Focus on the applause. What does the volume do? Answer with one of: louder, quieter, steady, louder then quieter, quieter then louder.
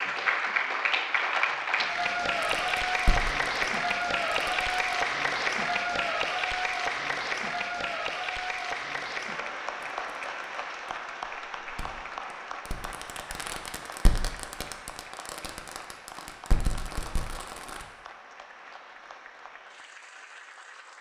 quieter.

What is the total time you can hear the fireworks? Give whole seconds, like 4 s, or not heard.
10 s.